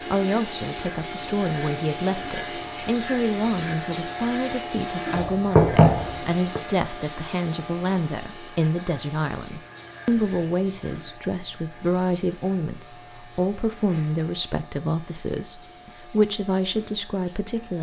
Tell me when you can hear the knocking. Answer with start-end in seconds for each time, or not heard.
5.2-6.6.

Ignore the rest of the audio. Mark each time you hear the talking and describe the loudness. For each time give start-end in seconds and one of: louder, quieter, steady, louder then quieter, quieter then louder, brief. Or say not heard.
0.0-17.7 steady.